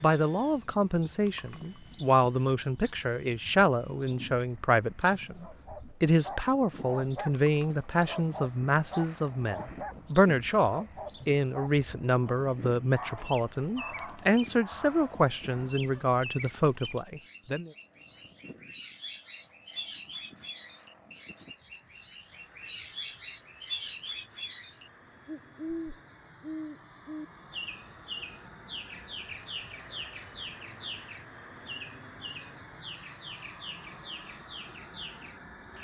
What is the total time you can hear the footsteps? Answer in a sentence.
The footsteps can't be heard in this clip.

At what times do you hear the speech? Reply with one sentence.
The speech can be heard from 0.0 to 17.7 s.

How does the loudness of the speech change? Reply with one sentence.
The loudness of the speech stays about the same.